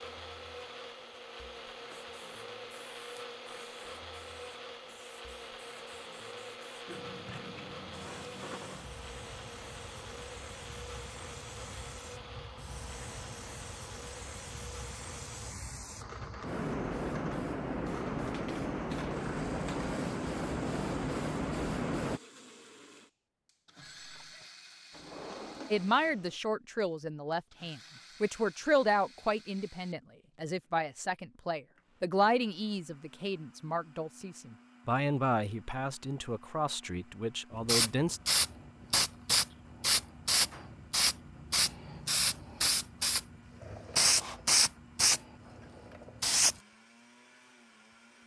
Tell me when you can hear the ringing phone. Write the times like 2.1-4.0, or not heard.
23.8-24.5.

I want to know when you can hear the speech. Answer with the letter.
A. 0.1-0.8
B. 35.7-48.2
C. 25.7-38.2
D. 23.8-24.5
C.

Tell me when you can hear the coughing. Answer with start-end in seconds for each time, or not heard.
not heard.